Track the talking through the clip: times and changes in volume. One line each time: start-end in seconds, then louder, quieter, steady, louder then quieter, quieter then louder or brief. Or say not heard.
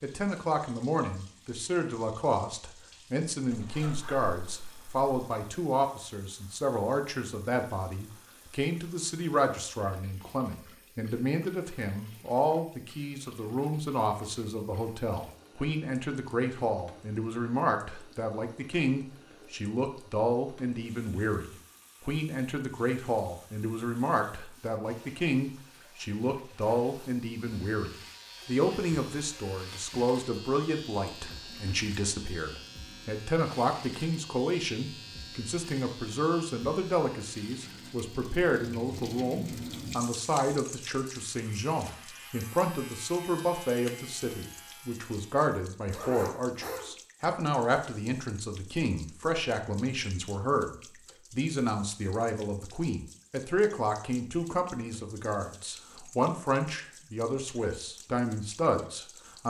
0.0-59.4 steady.